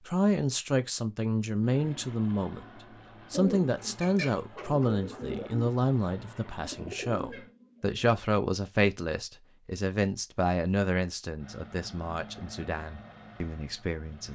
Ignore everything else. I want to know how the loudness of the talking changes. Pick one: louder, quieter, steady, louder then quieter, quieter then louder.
quieter.